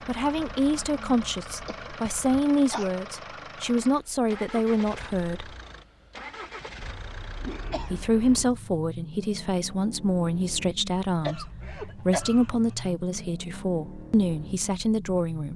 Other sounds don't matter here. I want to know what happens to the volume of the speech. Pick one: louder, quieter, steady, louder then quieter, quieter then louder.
steady.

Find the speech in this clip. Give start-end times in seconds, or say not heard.
0.1-5.5, 7.8-15.5.